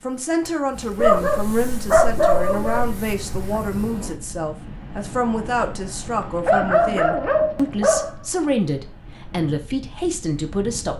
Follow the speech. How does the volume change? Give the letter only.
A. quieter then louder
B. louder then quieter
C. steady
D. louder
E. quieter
C.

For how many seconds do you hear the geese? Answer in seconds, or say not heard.
not heard.